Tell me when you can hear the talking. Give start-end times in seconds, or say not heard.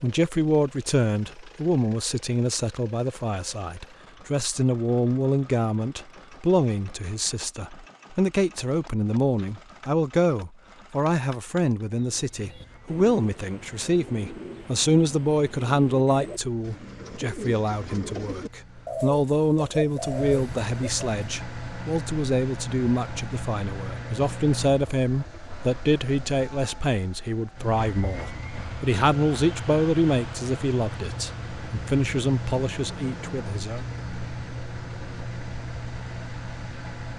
0.0-33.9.